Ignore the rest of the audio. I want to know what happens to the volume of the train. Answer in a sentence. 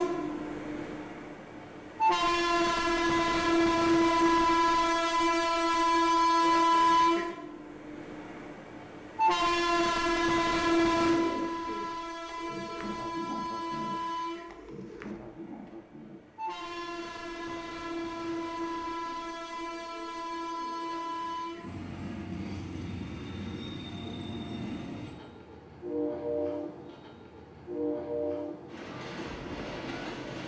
The loudness of the train goes down.